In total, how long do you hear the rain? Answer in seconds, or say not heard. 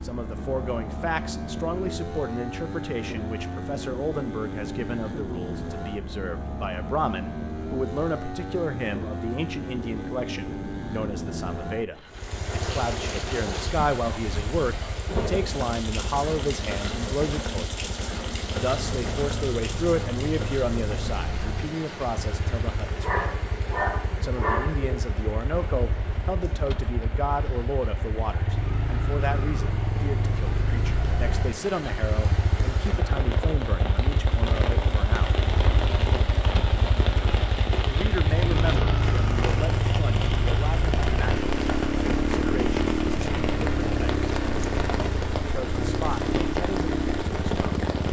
36 s.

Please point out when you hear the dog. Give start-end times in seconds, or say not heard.
23.0-25.0.